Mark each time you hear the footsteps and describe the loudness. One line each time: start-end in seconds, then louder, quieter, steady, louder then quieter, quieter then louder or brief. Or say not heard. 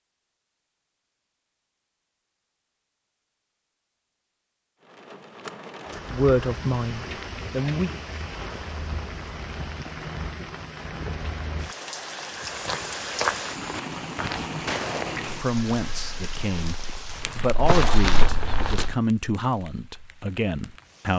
12.3-18.9 quieter then louder.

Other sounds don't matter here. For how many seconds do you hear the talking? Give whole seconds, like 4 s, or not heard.
8 s.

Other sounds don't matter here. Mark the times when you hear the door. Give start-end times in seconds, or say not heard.
not heard.